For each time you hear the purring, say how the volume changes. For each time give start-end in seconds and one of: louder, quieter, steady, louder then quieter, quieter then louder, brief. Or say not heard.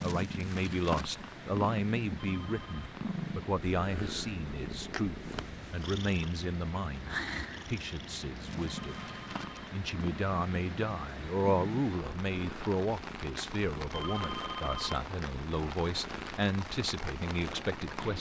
0.0-18.1 quieter.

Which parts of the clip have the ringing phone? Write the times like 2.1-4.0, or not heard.
2.1-3.0, 8.7-9.7, 13.9-15.0.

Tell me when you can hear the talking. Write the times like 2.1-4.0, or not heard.
0.0-9.1, 9.7-18.1.